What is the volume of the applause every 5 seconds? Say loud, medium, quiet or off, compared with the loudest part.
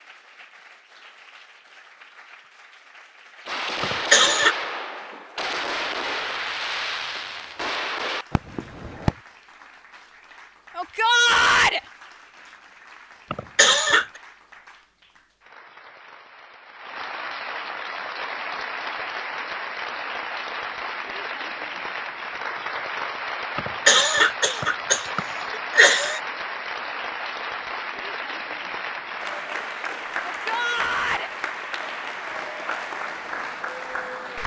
quiet, quiet, quiet, loud, loud, loud, loud.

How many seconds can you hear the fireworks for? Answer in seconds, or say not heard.
6 s.